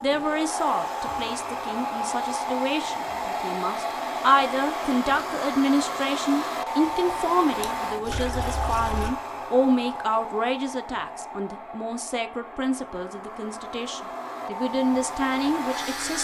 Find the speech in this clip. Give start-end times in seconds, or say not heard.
0.0-16.1.